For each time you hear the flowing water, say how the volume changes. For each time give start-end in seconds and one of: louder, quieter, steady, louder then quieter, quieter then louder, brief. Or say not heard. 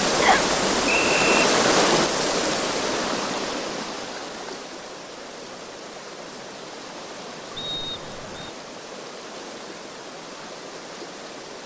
0.0-11.6 quieter.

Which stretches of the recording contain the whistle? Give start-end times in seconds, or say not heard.
0.2-1.2, 7.5-8.5.